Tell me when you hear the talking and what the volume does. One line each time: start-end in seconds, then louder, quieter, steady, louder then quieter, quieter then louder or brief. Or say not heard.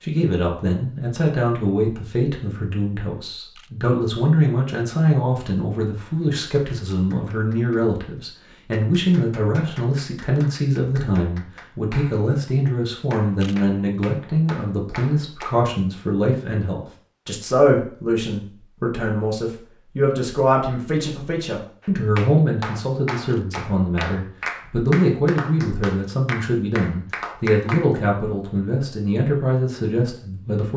0.0-30.7 steady.